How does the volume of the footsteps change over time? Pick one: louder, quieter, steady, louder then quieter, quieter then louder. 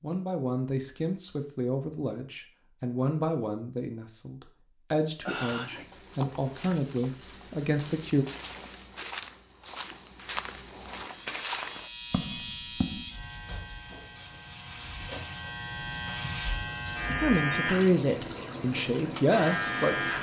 louder.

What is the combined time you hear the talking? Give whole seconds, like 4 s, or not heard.
11 s.